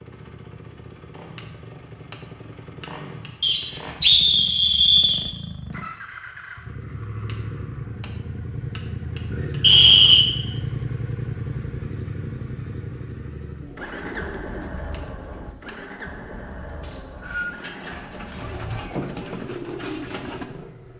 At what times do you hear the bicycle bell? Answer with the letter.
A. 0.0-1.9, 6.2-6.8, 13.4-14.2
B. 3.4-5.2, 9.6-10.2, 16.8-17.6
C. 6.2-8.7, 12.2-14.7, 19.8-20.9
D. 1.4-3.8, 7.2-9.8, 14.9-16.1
D.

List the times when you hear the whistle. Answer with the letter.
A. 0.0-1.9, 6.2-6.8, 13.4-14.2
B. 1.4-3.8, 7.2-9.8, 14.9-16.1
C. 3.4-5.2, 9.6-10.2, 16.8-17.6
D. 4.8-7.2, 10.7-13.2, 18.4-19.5
C.